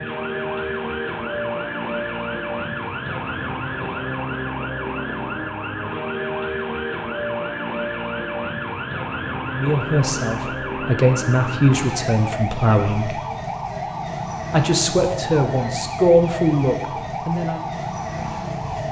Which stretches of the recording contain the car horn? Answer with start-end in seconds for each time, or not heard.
not heard.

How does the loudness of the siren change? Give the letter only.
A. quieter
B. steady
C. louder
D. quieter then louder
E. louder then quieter
B.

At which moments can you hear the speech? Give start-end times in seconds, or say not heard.
9.4-13.2, 14.5-17.6.